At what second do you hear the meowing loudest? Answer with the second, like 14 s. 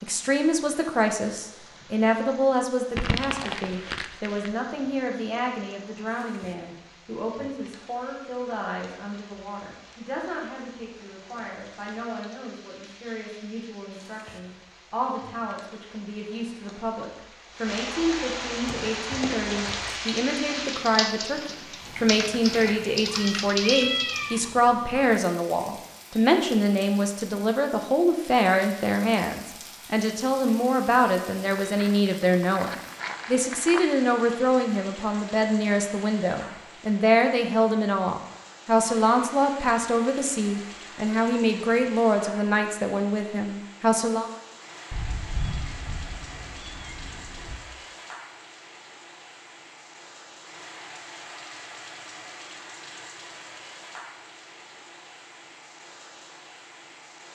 24 s.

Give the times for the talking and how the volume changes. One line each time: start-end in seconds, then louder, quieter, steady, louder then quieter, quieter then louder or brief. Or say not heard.
0.0-44.3 quieter then louder.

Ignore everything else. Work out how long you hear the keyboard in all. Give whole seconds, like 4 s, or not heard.
6 s.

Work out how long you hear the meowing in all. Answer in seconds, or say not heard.
4 s.